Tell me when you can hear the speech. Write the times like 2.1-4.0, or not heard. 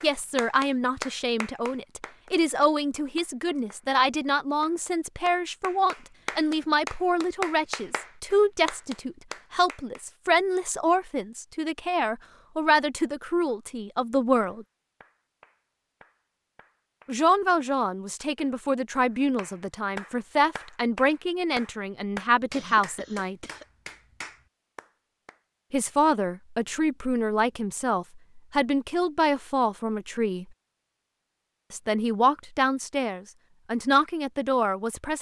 0.0-14.7, 17.1-23.4, 25.7-30.4, 31.7-35.1.